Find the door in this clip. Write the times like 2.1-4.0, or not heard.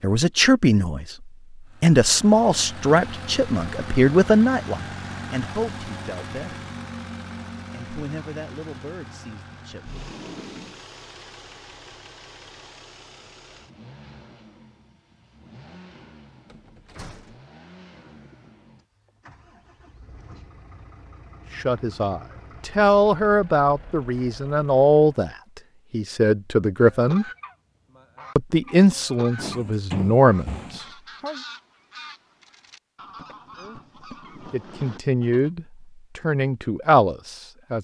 9.9-10.8, 16.4-17.4, 29.4-30.9.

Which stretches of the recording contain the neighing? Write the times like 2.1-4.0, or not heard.
not heard.